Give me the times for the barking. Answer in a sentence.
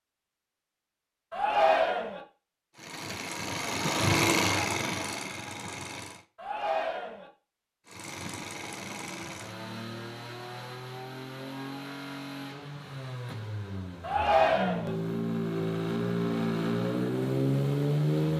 The barking can't be heard in this clip.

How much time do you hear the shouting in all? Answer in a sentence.
You can hear the shouting for 3 seconds altogether.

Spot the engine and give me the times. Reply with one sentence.
You can hear the engine from 2.8 to 6.2 s and from 7.8 to 18.3 s.